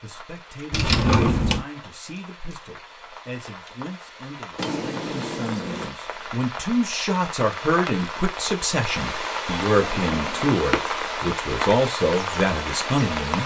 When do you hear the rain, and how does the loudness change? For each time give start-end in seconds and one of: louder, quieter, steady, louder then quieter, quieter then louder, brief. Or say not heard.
0.0-13.4 louder.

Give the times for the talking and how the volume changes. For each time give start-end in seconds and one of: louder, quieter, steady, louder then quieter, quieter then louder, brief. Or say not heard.
0.0-13.4 louder.